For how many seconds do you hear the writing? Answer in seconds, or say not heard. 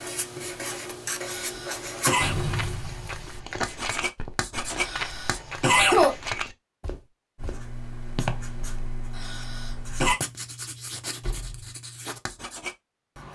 11 s.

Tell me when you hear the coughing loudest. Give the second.
6 s.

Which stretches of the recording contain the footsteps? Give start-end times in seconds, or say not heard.
2.4-8.6.